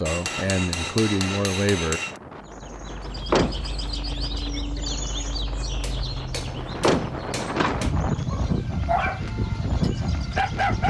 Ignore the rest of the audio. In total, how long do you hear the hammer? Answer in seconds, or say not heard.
4 s.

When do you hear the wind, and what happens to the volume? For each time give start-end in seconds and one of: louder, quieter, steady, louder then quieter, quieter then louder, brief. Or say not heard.
0.1-10.8 louder.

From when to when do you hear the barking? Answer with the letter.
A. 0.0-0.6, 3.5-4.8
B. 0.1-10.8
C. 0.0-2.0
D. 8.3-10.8
D.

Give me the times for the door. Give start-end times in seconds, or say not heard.
3.0-3.6, 6.5-7.9.